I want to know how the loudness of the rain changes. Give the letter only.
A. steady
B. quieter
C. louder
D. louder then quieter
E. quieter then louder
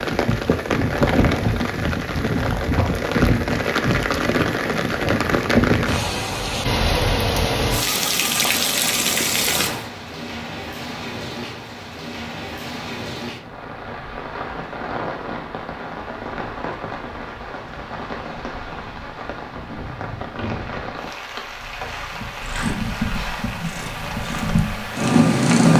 B.